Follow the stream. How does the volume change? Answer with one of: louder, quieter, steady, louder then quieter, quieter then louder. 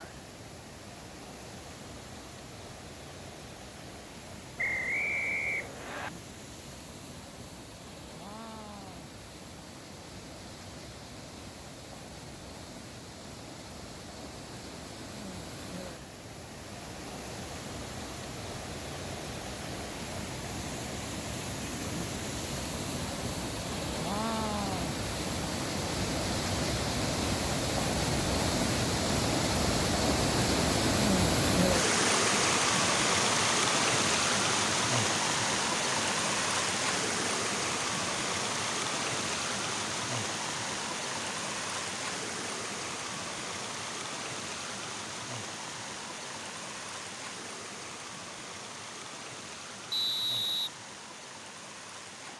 louder then quieter.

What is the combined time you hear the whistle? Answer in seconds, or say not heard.
2 s.